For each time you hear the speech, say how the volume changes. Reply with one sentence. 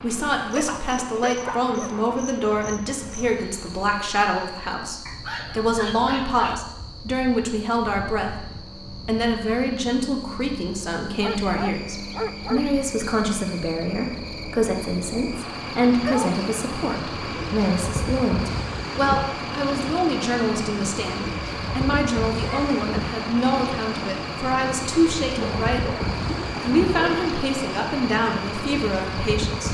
You can hear the speech from 0.0 to 26.1 s, at a steady volume; and briefly from 26.6 to 29.6 s.